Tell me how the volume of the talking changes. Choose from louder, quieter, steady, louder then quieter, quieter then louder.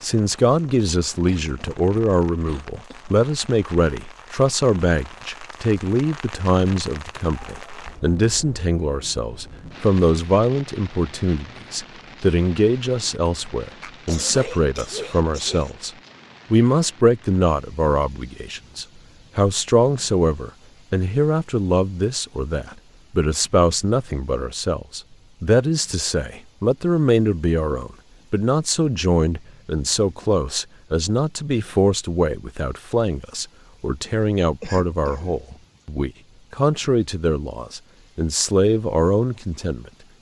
steady.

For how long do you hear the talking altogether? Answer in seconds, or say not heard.
39 s.